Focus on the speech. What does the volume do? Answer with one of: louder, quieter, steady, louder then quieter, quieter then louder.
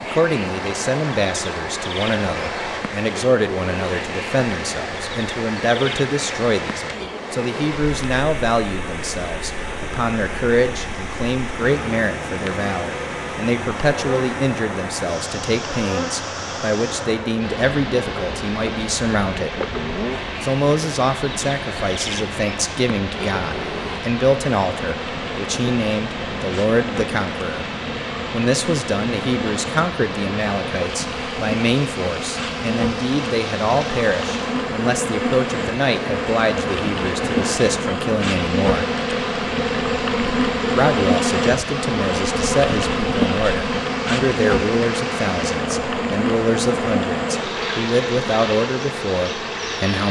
steady.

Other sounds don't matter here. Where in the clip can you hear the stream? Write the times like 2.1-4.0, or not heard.
0.0-50.0.